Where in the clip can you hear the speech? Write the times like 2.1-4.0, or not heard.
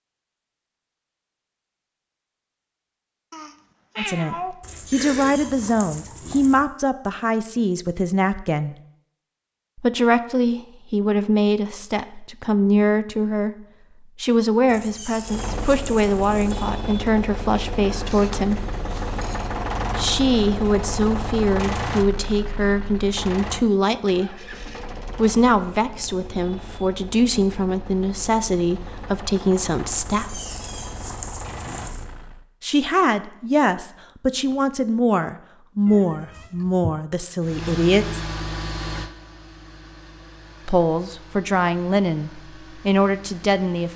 4.0-8.8, 9.8-18.6, 19.9-24.4, 25.1-30.4, 32.6-38.2, 40.6-43.9.